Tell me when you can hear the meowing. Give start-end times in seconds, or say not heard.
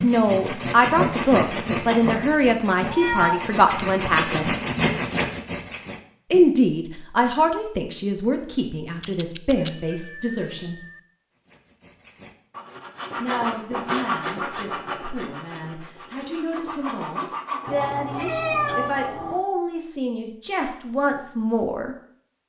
2.9-3.5, 9.0-11.0, 17.6-19.4.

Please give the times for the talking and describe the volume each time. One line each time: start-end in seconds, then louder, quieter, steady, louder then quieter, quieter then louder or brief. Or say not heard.
0.0-4.5 steady
6.3-10.8 quieter
13.2-21.9 louder.